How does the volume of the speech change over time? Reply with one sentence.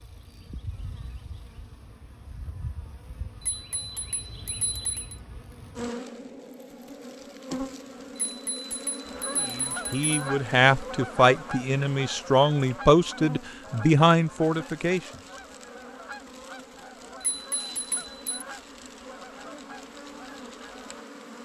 The loudness of the speech stays about the same.